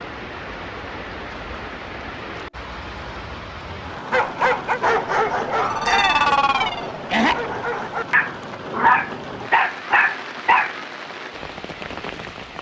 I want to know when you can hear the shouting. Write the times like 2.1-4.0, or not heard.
5.8-6.3.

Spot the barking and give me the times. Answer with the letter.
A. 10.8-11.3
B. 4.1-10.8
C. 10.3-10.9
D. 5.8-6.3
B.